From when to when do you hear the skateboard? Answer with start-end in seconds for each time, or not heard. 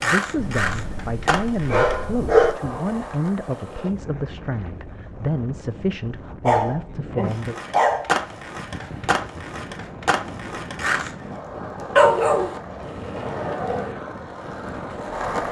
0.0-3.9, 7.2-15.4.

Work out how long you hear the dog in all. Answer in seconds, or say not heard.
6 s.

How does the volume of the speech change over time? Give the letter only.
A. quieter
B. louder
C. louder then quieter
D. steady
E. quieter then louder
D.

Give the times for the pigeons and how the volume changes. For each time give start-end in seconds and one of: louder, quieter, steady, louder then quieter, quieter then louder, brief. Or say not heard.
not heard.